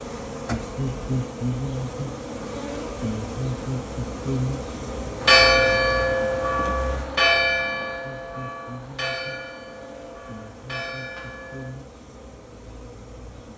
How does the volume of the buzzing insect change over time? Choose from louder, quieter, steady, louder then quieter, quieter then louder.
quieter.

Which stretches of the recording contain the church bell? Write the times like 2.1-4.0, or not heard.
5.2-11.7.